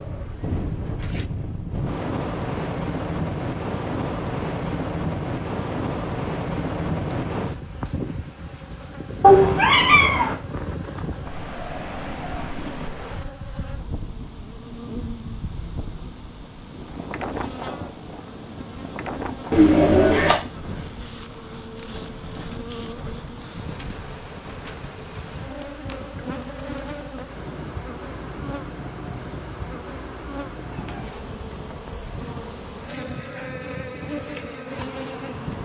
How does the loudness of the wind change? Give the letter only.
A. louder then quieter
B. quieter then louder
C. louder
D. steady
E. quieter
E.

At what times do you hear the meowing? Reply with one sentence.
You can hear the meowing from 9.2 to 10.3 s, from 19.5 to 20.4 s and from 30.7 to 31.1 s.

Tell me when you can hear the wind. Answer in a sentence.
The wind can be heard from 0.0 to 35.6 s.